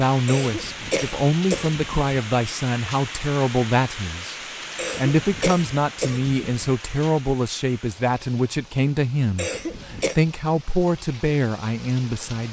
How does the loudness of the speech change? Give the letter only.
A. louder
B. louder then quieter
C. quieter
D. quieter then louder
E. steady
E.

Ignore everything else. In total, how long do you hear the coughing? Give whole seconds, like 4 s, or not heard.
5 s.